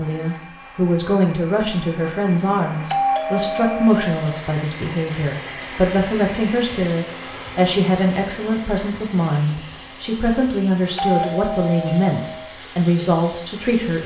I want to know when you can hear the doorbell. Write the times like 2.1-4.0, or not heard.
2.9-4.4, 10.9-12.5.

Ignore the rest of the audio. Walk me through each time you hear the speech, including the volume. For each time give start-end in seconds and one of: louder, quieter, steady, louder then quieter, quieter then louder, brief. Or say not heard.
0.0-14.0 steady.